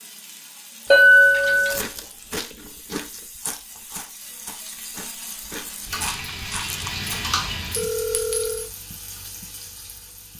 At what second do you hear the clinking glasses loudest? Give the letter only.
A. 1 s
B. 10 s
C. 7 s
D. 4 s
A.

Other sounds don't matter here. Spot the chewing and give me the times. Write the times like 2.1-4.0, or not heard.
1.5-7.2.